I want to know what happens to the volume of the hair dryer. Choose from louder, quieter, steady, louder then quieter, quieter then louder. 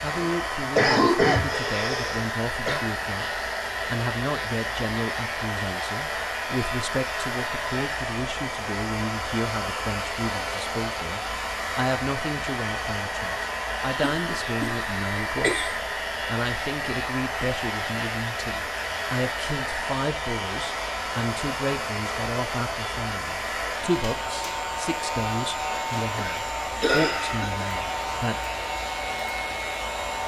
steady.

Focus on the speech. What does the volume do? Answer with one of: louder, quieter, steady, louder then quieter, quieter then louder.
steady.